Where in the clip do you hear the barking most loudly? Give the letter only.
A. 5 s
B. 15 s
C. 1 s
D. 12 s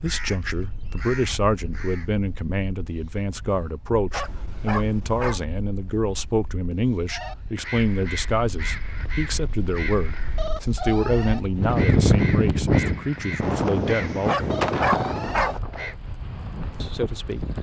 B.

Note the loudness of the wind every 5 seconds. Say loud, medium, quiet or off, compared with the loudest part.
quiet, quiet, loud, medium.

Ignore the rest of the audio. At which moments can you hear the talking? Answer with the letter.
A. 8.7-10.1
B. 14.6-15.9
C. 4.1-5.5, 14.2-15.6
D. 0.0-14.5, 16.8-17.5
D.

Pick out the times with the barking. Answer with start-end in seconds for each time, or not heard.
4.1-5.5, 14.2-15.6.